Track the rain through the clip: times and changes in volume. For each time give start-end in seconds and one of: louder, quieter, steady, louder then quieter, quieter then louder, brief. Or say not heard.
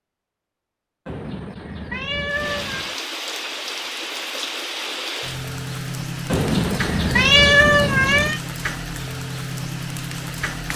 2.2-10.7 steady.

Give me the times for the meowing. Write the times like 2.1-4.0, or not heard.
1.1-3.0, 6.3-8.4.